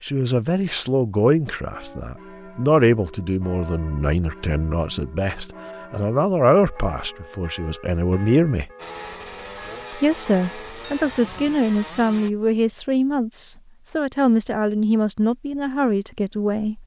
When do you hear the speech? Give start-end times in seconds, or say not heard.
0.0-8.7, 9.9-16.8.